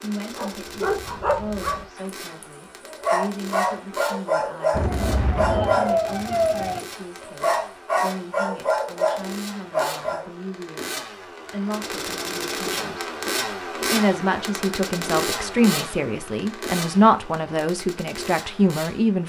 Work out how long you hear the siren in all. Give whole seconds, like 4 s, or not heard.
2 s.